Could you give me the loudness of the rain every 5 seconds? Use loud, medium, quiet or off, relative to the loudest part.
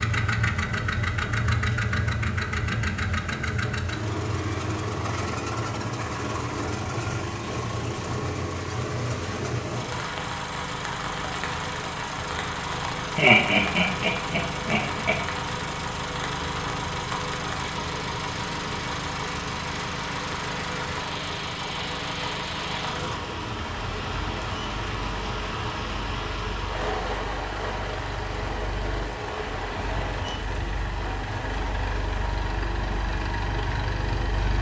medium, loud, loud, loud, loud, loud, medium.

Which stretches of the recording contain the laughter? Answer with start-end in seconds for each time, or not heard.
13.2-15.2.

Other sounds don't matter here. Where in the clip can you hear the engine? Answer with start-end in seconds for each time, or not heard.
0.0-34.5.